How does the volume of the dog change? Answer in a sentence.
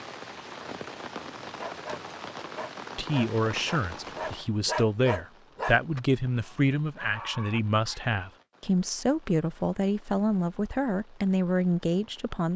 The loudness of the dog goes up, then down.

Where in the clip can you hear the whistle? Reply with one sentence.
The whistle can't be heard in this clip.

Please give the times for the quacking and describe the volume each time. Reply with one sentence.
The quacking can't be heard in this clip.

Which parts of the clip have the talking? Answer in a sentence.
The talking can be heard from 3.0 to 12.5 s.